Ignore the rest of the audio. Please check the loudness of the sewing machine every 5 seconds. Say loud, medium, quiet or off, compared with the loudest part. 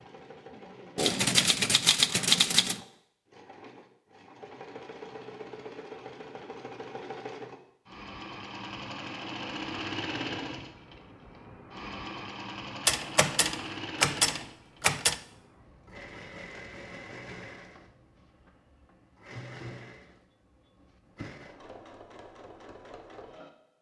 medium, loud, loud, medium, medium.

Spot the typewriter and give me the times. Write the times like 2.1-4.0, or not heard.
0.9-2.8, 12.8-15.2.